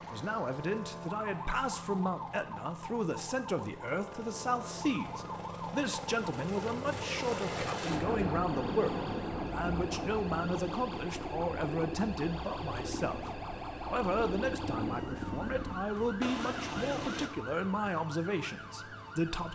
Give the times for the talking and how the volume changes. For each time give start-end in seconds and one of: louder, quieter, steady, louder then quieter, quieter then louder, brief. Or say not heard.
0.0-19.5 steady.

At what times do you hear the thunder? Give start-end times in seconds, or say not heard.
7.8-10.9.